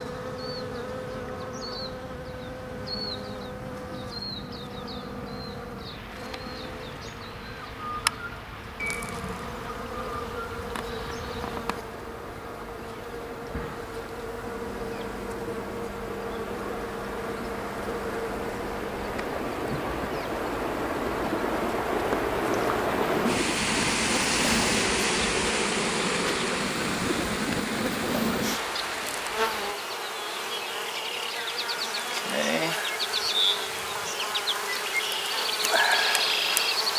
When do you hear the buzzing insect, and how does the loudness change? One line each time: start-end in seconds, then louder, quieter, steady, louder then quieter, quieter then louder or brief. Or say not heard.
0.0-36.9 louder.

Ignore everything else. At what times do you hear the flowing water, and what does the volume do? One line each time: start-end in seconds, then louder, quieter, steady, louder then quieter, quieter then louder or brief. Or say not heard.
0.0-29.8 louder.